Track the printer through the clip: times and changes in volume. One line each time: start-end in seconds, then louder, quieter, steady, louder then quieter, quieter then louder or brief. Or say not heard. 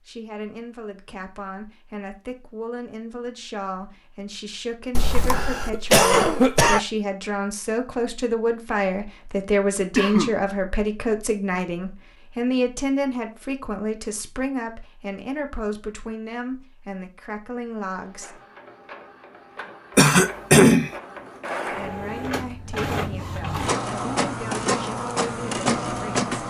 17.9-26.4 louder.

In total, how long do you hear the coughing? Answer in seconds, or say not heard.
3 s.